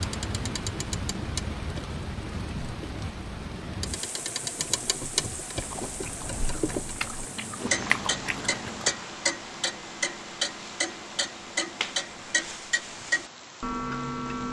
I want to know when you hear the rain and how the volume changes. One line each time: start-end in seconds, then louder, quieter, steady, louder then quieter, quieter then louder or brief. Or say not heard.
0.0-14.4 quieter.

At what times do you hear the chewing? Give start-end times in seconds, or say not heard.
5.5-8.9.